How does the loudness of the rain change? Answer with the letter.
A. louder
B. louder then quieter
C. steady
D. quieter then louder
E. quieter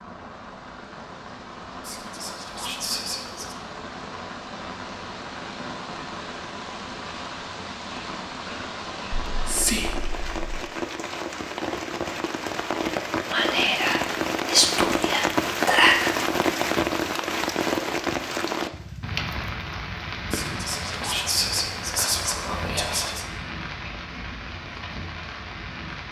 B.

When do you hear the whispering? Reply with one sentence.
The whispering can be heard from 1.8 to 3.5 s, from 9.2 to 10.7 s, from 13.3 to 16.1 s and from 20.3 to 23.2 s.